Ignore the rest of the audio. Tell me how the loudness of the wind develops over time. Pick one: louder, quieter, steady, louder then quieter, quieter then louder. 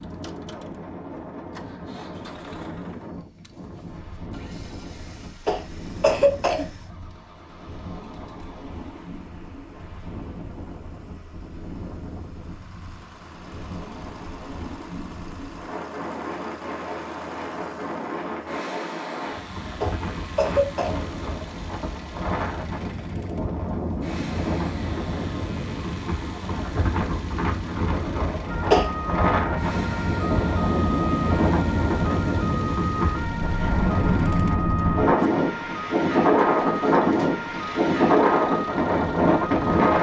louder.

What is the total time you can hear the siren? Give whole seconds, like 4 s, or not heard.
11 s.